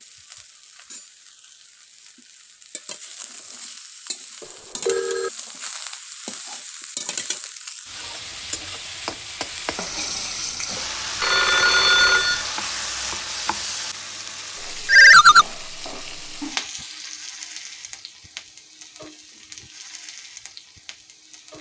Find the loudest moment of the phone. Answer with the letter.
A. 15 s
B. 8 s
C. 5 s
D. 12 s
A.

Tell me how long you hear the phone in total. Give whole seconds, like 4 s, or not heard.
3 s.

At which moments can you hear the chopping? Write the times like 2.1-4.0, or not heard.
not heard.